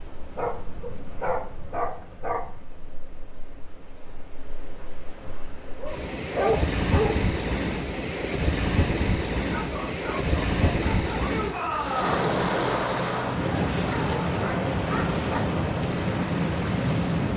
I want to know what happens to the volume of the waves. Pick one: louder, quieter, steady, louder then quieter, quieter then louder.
louder.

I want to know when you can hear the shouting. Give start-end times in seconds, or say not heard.
11.2-12.2.